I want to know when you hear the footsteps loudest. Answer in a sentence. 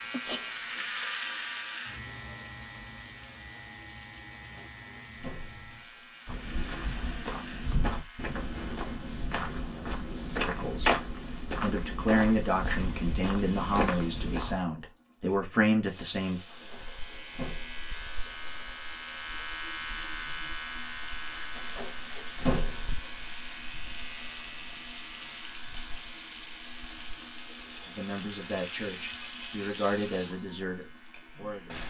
The volume of the footsteps peaks at 11 seconds.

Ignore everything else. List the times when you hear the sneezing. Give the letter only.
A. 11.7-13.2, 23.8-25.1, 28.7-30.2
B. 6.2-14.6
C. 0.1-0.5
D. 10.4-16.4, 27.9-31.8
C.